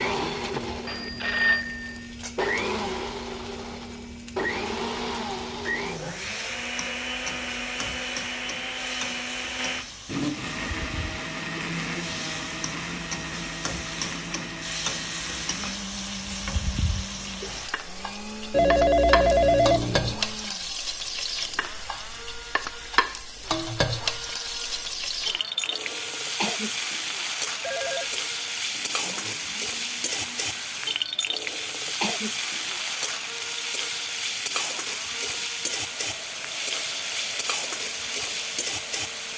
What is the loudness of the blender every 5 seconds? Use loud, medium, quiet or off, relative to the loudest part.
loud, loud, loud, medium, quiet, quiet, quiet, quiet.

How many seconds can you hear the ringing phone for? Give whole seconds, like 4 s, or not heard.
4 s.